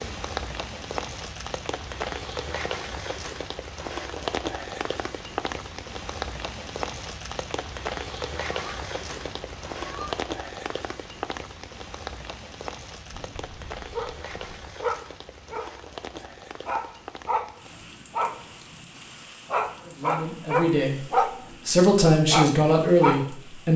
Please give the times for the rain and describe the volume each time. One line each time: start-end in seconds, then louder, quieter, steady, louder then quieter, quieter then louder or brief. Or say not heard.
0.0-23.7 quieter.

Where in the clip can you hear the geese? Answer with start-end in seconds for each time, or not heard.
8.5-10.2, 13.1-14.8.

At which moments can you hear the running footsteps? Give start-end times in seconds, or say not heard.
not heard.